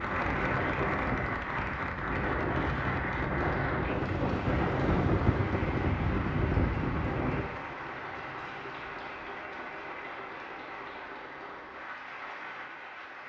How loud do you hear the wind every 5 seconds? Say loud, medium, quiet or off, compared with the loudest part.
loud, loud, off.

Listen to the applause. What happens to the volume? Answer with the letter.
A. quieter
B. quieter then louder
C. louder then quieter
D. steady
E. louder
A.